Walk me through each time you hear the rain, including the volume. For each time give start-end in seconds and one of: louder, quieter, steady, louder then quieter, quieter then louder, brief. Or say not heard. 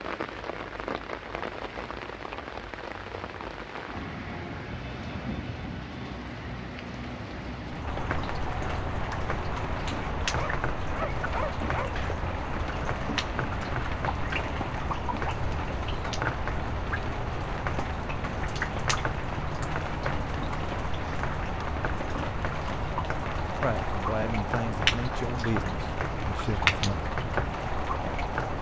0.0-28.5 louder.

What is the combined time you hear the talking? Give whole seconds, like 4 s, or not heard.
3 s.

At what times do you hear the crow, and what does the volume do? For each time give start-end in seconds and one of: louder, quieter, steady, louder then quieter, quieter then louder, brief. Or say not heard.
not heard.